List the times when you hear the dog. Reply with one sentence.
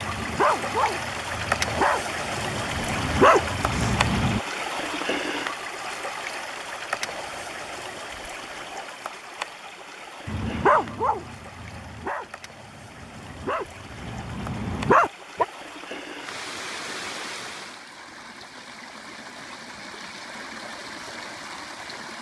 You can hear the dog from 0.0 to 4.4 s and from 10.2 to 15.4 s.